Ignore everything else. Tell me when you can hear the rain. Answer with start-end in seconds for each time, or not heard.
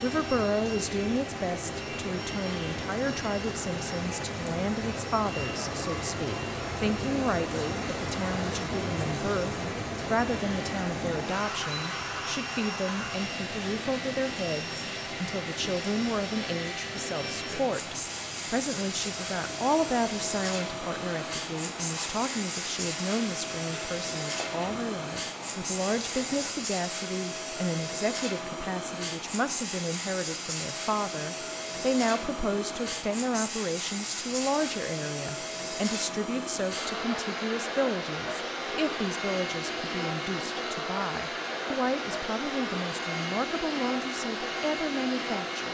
0.0-26.6.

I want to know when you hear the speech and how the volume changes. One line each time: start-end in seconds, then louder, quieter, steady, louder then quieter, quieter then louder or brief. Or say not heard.
0.0-45.6 steady.